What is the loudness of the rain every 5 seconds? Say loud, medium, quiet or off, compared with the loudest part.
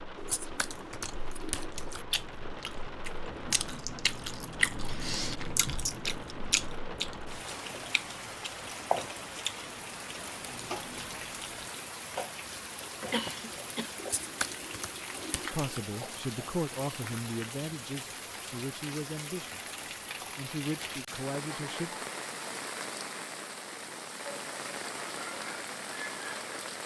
medium, loud, loud, loud, loud, loud.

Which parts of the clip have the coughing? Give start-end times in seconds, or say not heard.
13.1-13.9.